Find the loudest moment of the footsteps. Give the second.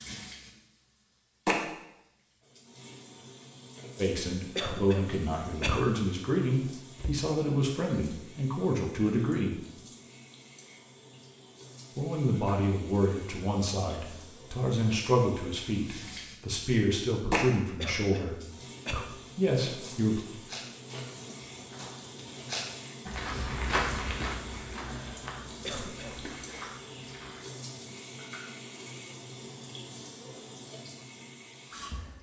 24 s.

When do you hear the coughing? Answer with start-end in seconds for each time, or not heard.
4.5-5.9, 17.8-19.1, 25.6-26.3.